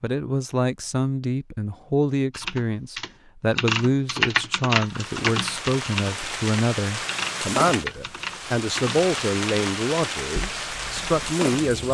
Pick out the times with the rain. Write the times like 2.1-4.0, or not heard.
4.8-11.8.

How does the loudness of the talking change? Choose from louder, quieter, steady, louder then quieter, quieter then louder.
steady.